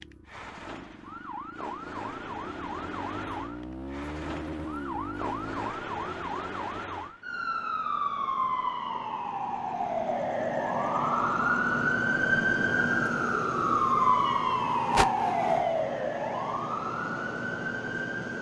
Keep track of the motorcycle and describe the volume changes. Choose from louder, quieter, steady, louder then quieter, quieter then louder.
louder.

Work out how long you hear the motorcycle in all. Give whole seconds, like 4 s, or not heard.
6 s.